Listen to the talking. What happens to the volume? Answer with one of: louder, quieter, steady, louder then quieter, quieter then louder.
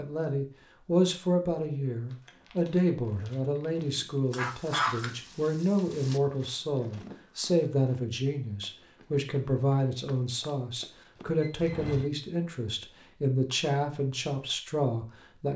steady.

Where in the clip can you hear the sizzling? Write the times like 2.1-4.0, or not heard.
4.3-6.2.